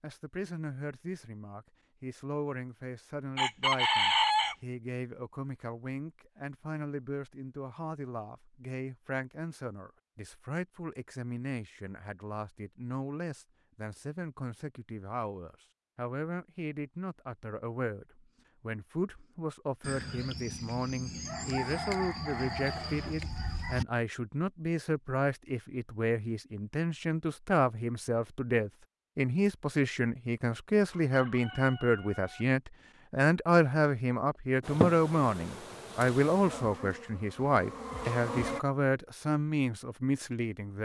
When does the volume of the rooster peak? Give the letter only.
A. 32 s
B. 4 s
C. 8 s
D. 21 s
B.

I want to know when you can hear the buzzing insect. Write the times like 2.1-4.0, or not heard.
34.6-38.6.